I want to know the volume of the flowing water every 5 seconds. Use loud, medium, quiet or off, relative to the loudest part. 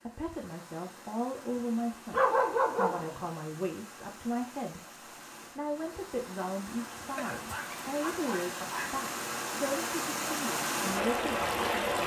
quiet, medium, loud.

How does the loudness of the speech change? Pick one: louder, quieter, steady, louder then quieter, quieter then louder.
steady.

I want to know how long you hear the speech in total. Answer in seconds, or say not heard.
12 s.